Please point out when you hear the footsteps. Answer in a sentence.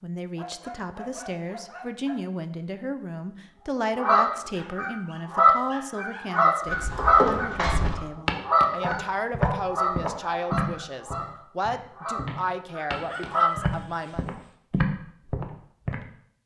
You can hear the footsteps from 6.7 to 16.0 s.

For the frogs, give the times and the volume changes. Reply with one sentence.
You can't hear the frogs here.